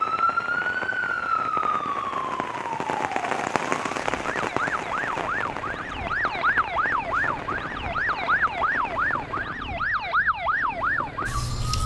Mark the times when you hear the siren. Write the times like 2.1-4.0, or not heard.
0.0-11.8.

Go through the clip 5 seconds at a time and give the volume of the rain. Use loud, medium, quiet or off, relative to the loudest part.
loud, medium, off.